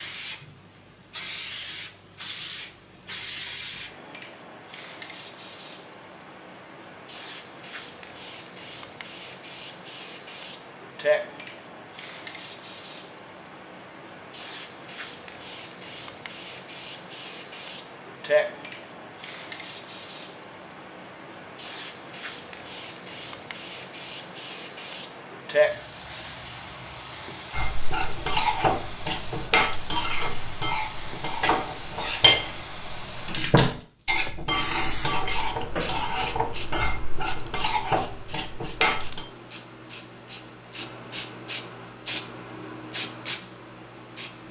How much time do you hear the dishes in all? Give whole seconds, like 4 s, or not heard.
12 s.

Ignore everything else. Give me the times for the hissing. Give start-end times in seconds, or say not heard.
0.0-44.4.